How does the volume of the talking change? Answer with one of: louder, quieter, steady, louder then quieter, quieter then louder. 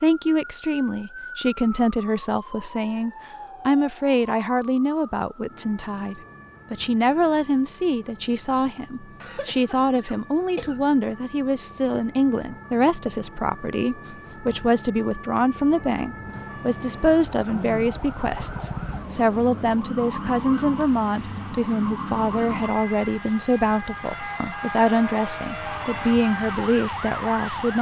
steady.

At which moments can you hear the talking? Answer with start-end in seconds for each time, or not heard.
0.0-27.7.